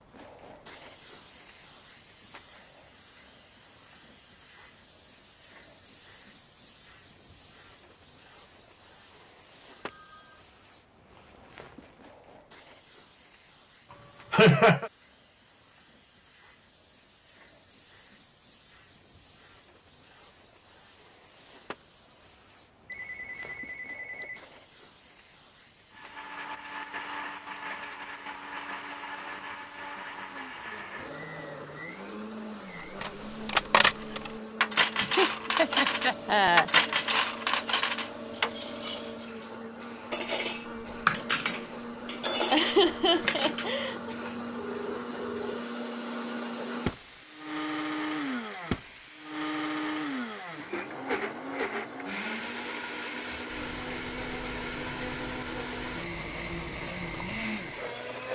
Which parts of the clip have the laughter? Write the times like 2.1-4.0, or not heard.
13.9-14.9, 35.0-36.7, 42.5-44.1.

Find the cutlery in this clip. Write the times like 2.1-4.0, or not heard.
33.0-39.5, 40.1-43.7.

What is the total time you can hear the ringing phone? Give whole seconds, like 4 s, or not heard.
4 s.